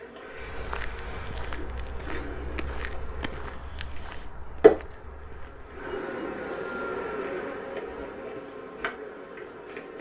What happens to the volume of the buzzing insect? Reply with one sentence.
The loudness of the buzzing insect goes up, then down.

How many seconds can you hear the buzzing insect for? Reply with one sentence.
The buzzing insect can be heard for 10 seconds in total.